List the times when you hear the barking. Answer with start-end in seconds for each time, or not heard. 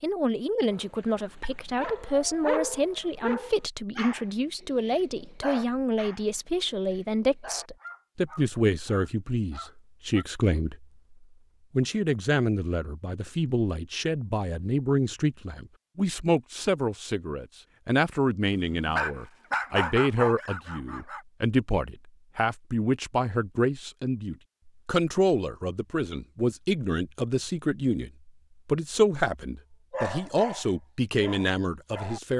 0.7-10.2, 18.6-21.2, 29.9-32.3.